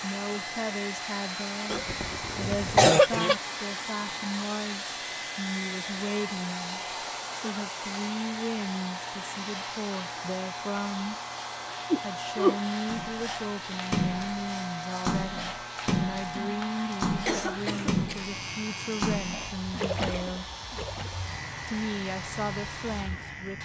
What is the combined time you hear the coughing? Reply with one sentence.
You can hear the coughing for 4 seconds altogether.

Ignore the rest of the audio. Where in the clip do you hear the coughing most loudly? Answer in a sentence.
The loudest moment of the coughing is at 3 seconds.